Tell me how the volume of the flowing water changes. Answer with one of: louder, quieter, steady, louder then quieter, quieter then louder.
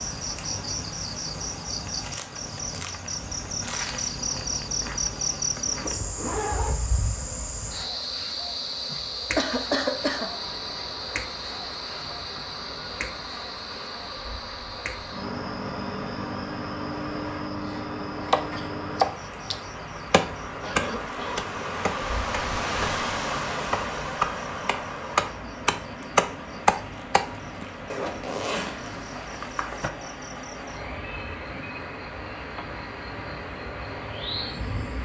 louder then quieter.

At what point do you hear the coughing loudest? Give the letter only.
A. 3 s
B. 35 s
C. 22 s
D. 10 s
D.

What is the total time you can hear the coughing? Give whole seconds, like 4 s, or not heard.
2 s.